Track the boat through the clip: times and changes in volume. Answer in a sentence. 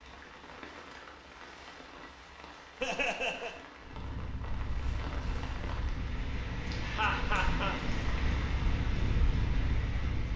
You can hear the boat from 3.8 to 10.3 s, getting louder.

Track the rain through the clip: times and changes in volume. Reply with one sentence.
You can hear the rain from 0.0 to 10.3 s, getting louder.